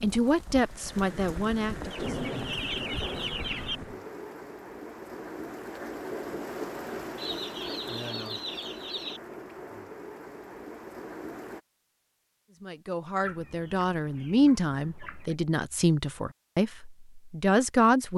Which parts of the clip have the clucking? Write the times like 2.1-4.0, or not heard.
1.9-3.8, 7.2-9.2, 13.2-15.3.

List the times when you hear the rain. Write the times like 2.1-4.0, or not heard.
0.0-11.6.